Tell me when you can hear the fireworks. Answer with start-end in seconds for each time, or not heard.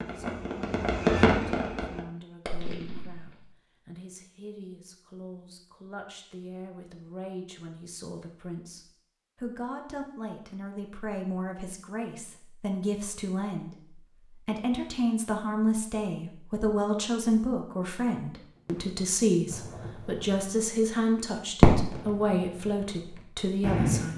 0.0-3.5, 18.6-20.3, 21.6-24.1.